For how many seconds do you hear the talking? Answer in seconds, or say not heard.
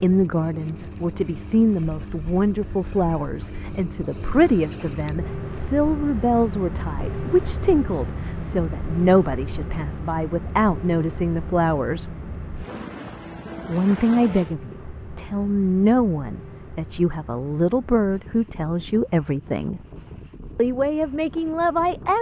20 s.